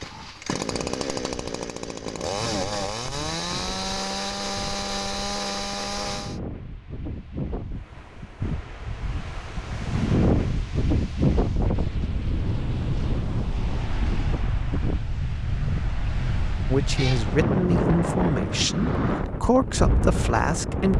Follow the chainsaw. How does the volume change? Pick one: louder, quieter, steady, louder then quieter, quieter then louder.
steady.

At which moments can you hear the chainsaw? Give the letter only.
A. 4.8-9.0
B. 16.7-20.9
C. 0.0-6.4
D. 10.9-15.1
C.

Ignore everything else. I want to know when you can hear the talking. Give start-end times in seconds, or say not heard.
16.7-20.9.